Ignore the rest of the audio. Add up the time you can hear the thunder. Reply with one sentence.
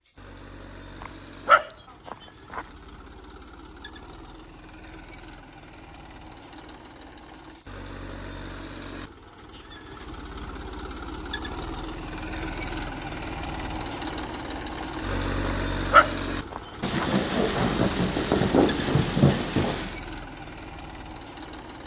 You can hear the thunder for 3 seconds altogether.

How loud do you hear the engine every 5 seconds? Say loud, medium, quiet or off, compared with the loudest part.
quiet, medium, loud, loud, medium.